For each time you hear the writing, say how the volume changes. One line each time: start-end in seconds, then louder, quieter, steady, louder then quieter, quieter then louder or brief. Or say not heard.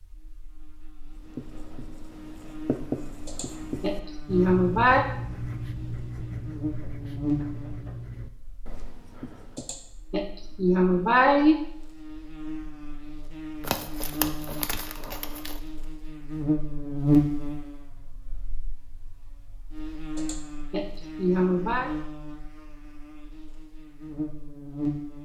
1.1-10.0 quieter.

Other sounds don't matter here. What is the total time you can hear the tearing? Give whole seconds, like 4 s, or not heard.
2 s.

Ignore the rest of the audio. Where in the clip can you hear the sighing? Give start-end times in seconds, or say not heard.
3.2-5.0, 9.6-11.6, 20.1-21.9.